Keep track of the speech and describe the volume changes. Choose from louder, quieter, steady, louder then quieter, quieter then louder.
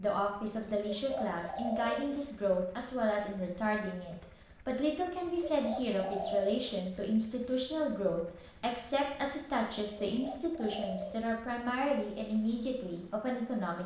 steady.